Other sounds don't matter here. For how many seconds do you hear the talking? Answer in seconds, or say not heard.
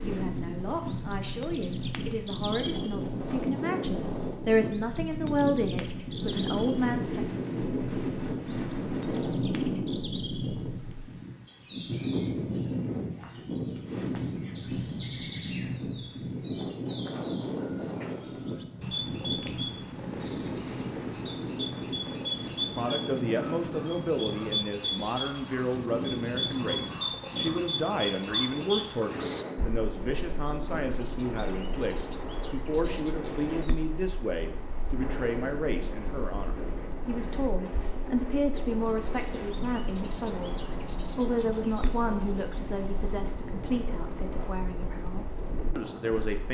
31 s.